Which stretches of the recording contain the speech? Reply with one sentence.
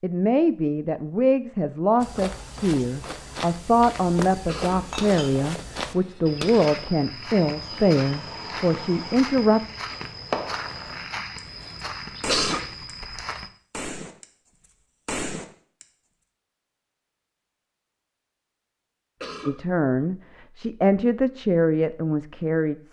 You can hear the speech from 0.0 to 9.6 s and from 19.4 to 22.8 s.